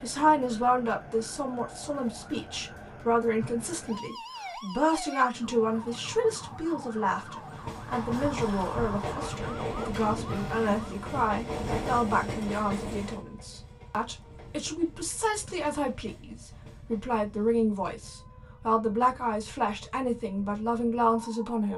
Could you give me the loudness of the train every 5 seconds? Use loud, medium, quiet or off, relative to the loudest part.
off, loud, loud, quiet, off.